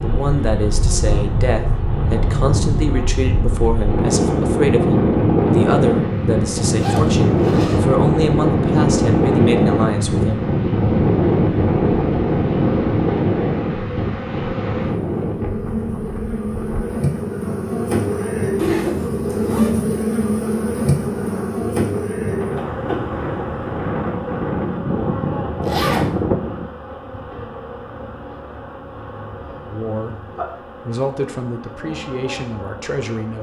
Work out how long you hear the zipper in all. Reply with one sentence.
You can hear the zipper for 3 seconds altogether.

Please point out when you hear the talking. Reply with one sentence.
You can hear the talking from 0.0 to 10.5 s and from 29.7 to 33.3 s.